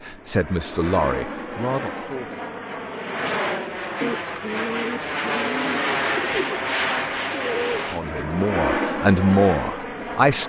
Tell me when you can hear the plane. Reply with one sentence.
The plane can be heard from 0.0 to 10.4 s.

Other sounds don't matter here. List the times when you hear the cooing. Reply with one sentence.
You can hear the cooing from 4.0 to 8.9 s.